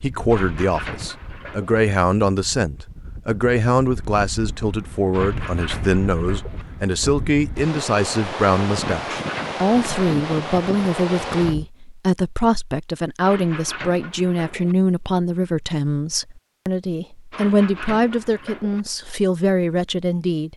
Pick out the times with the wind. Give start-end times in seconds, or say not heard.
0.0-11.7.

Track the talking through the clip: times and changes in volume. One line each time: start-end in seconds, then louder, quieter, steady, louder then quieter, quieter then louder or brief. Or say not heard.
0.0-20.5 steady.